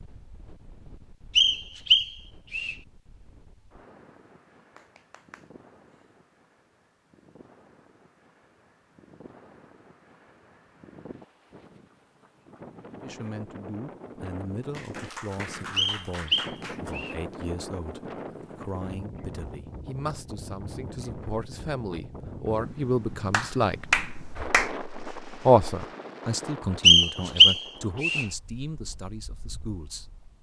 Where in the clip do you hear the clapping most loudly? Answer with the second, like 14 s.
24 s.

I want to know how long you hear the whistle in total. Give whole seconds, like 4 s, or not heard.
4 s.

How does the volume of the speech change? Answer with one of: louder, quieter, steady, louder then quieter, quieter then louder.
louder then quieter.